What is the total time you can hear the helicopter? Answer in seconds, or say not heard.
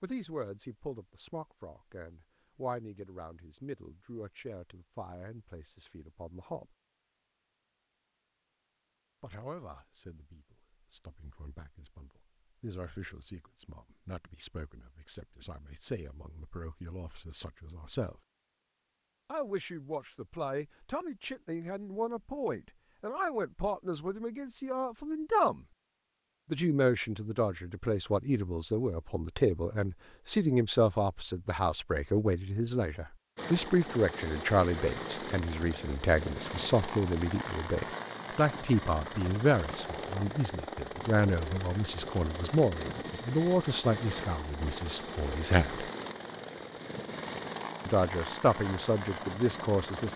17 s.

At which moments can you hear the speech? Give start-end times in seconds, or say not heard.
0.0-6.8, 9.2-18.2, 19.2-25.6, 26.5-45.9, 47.9-50.1.